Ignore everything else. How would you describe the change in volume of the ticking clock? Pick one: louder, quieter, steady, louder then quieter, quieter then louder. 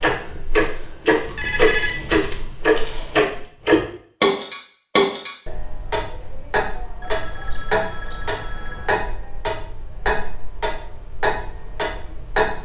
quieter.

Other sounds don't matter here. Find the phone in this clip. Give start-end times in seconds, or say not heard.
1.4-2.4, 7.0-9.1.